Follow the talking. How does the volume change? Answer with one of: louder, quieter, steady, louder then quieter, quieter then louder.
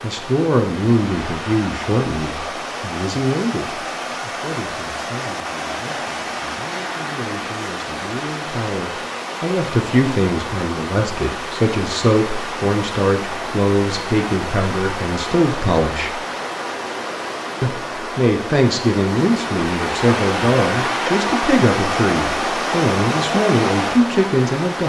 quieter then louder.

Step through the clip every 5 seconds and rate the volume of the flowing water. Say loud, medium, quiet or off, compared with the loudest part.
medium, medium, medium, medium, loud.